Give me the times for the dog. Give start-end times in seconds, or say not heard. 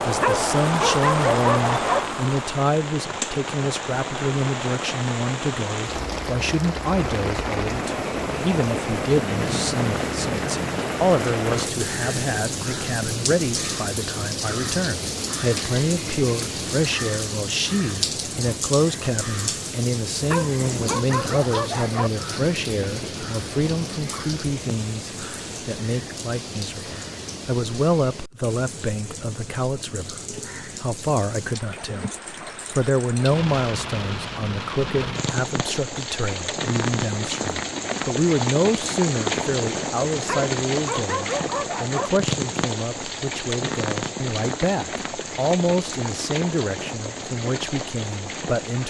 0.1-2.0, 20.2-22.1, 40.2-42.1.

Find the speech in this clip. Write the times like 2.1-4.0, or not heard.
0.1-32.1, 32.7-48.8.